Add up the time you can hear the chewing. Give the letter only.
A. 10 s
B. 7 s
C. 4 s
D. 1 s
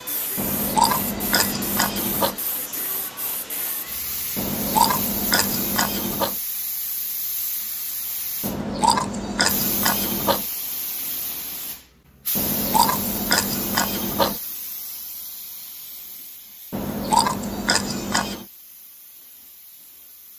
A.